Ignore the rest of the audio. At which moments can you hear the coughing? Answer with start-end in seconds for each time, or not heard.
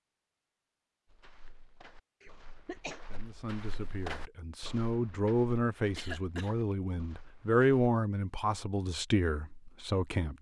2.2-3.0, 6.0-6.5.